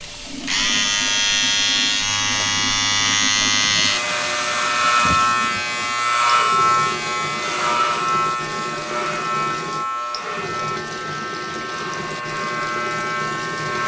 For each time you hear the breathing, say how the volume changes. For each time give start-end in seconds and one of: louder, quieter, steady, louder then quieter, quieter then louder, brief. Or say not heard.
not heard.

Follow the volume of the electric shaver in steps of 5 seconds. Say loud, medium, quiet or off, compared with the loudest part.
loud, loud, medium.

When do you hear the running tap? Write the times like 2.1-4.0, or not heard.
0.0-13.8.